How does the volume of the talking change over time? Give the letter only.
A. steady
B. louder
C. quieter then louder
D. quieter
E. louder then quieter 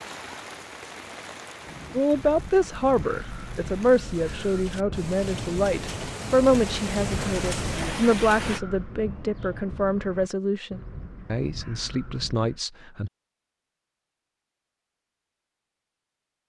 D.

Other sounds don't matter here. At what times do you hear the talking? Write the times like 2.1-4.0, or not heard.
1.9-13.1.